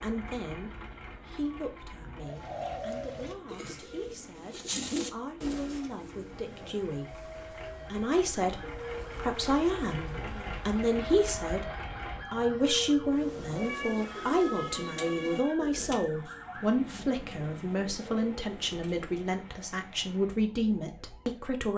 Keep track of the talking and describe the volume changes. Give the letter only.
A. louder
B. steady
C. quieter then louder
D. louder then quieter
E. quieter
A.